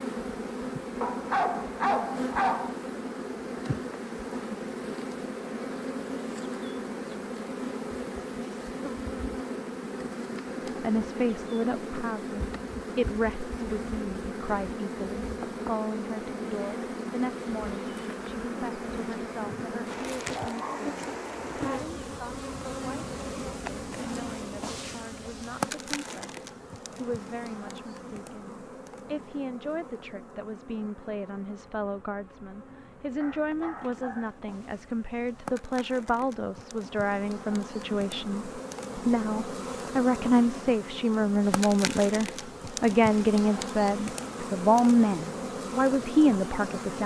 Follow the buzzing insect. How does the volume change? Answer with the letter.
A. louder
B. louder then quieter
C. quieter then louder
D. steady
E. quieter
C.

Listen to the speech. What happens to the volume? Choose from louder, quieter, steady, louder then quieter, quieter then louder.
quieter then louder.